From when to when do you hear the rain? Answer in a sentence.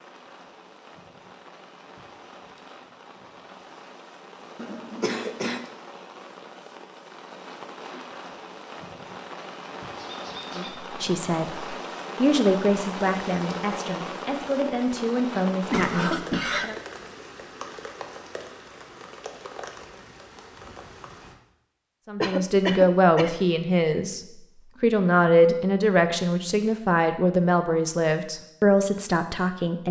The rain can be heard from 0.0 to 21.4 s.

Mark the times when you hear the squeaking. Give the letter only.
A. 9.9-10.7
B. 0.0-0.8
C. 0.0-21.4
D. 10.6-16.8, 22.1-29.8
A.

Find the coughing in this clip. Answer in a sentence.
You can hear the coughing from 4.5 to 5.7 s, from 15.7 to 16.7 s and from 22.2 to 23.4 s.